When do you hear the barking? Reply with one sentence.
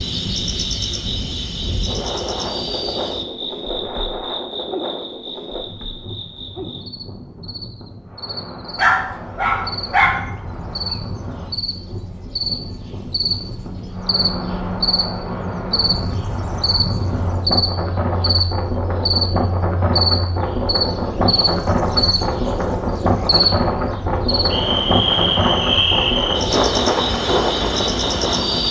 The barking can be heard from 8.8 to 10.6 s.